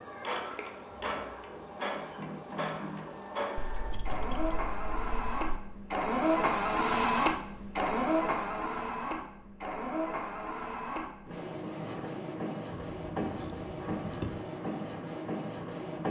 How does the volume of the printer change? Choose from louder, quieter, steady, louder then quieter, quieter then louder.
louder then quieter.